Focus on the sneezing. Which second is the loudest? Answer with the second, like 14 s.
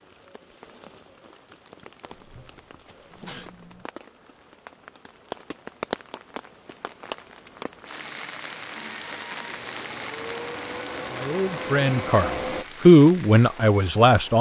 3 s.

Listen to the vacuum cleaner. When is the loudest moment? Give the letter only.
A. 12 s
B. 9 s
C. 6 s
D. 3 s
A.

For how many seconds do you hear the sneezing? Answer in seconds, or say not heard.
2 s.